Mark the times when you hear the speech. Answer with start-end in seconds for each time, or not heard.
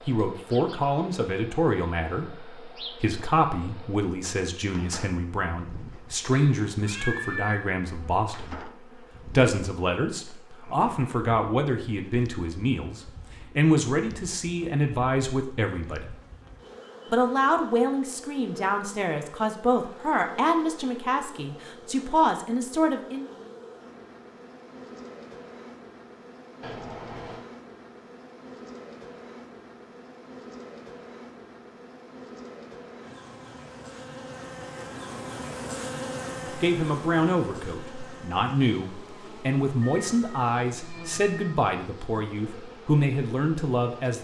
0.0-16.1, 17.1-23.2, 36.5-44.1.